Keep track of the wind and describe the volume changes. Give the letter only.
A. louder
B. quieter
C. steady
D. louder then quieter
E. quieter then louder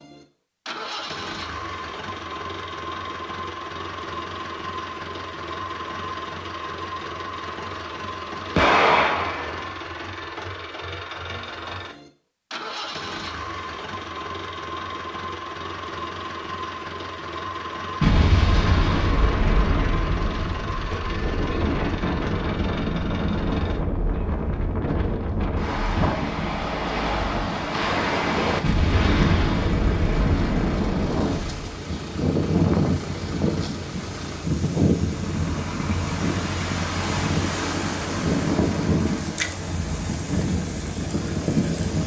C.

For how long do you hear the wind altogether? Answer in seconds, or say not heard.
21 s.